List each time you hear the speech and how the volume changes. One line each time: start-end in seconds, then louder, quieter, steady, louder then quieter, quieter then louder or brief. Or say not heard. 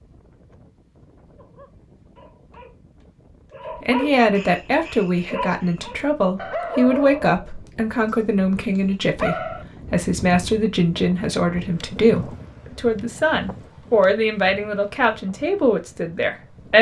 3.8-16.7 steady.